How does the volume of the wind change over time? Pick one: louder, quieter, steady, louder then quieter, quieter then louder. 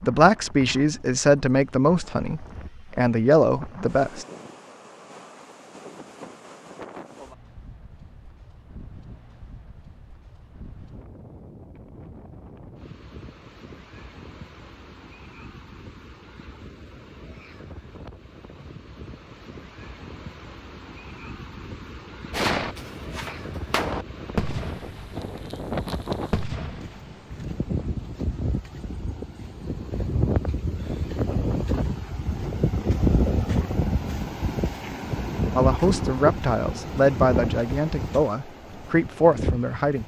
louder.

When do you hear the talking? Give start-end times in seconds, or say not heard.
0.0-4.2, 35.5-40.0.